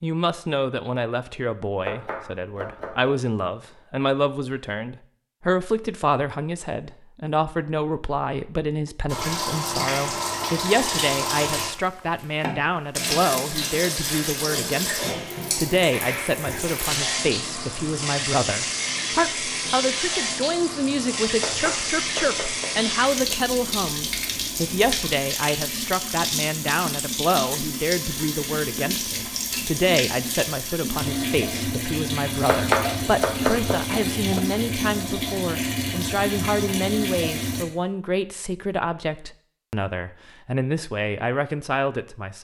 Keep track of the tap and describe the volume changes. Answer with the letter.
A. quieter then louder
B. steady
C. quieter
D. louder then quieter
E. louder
B.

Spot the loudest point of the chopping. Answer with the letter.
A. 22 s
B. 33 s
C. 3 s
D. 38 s
B.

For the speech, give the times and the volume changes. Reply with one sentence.
You can hear the speech from 0.0 to 42.3 s, at a steady volume.